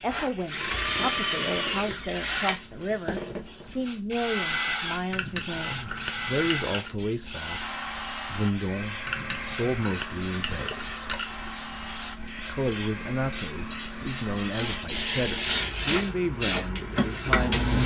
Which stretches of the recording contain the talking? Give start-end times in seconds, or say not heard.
0.0-11.2, 12.3-17.8.